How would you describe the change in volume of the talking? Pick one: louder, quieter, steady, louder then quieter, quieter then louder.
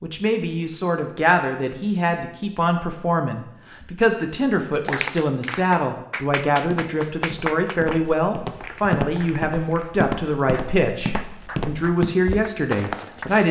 steady.